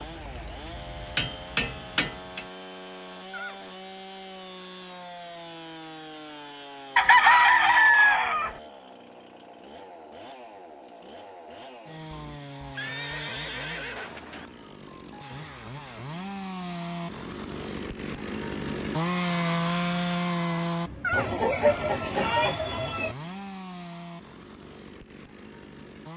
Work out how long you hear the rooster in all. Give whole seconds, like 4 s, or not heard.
4 s.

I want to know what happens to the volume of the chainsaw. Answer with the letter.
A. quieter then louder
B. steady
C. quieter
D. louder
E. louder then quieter
E.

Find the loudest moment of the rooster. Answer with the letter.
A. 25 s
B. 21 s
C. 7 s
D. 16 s
C.